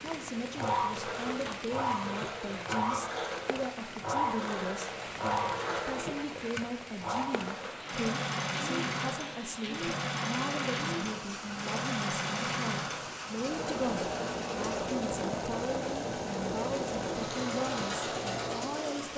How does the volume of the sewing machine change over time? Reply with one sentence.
The volume of the sewing machine stays about the same.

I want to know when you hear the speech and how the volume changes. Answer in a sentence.
You can hear the speech from 0.0 to 19.1 s, at a steady volume.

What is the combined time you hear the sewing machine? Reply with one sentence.
The sewing machine can be heard for 19 seconds in total.